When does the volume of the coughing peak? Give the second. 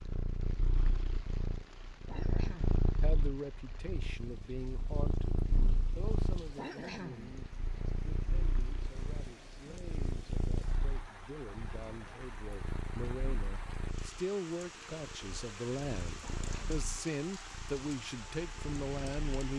7 s.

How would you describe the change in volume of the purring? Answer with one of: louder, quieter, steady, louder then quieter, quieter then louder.
quieter.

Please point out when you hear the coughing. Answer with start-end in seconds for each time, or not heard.
2.0-2.8, 6.5-7.3, 16.2-16.9.